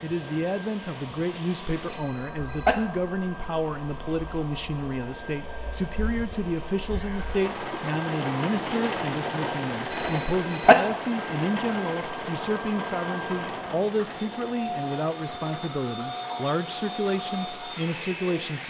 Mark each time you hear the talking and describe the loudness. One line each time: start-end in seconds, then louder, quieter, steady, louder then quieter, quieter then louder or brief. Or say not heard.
0.0-18.6 steady.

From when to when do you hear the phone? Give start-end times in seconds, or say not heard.
1.9-2.8, 9.9-10.8.